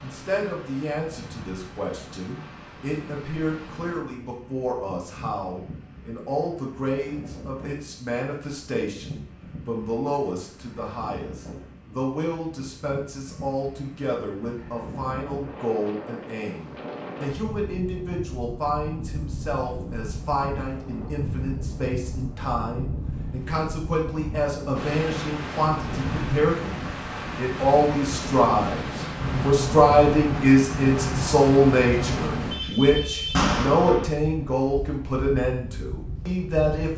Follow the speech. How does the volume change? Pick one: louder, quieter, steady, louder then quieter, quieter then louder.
louder.